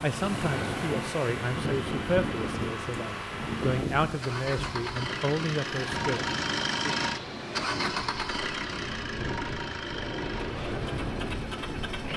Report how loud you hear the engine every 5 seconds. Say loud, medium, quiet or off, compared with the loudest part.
medium, loud, medium.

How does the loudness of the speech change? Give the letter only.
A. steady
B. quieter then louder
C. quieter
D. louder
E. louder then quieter
B.